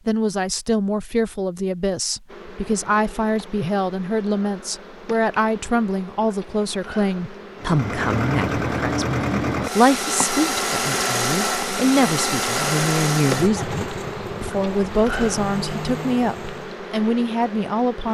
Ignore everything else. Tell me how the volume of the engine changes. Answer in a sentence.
The volume of the engine goes down.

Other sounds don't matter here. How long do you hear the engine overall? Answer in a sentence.
The engine can be heard for 9 seconds in total.